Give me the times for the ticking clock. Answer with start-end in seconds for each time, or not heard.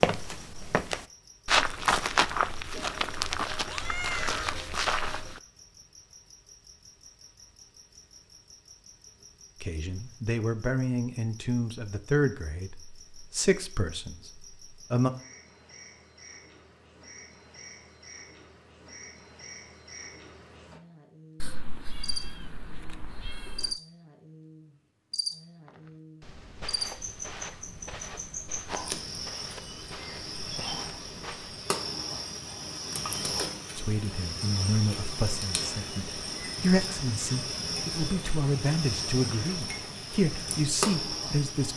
not heard.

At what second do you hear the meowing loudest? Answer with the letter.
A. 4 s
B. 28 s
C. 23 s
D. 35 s
A.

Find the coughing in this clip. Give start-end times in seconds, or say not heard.
not heard.